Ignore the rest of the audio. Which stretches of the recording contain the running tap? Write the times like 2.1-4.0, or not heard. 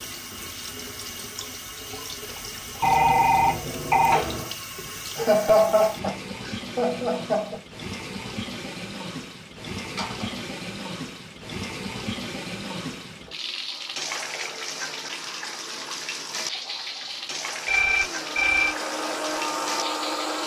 0.0-20.4.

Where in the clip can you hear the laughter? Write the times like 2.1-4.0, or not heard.
5.2-7.6.